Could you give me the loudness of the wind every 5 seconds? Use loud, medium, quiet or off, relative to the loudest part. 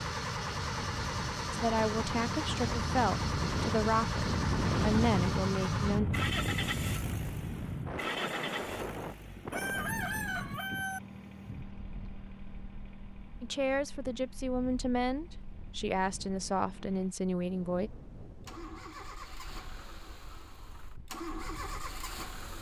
loud, loud, quiet, quiet, quiet.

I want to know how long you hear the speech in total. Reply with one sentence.
The speech can be heard for 9 seconds in total.